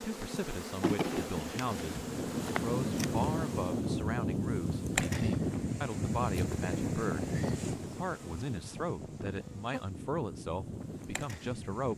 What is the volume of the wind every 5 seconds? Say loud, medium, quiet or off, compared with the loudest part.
loud, loud, medium.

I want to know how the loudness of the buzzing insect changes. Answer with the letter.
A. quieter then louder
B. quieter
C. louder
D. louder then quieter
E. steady
B.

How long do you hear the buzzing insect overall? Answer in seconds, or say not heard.
12 s.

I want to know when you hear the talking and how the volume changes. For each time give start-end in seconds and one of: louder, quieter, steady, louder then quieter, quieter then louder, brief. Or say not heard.
0.0-11.9 steady.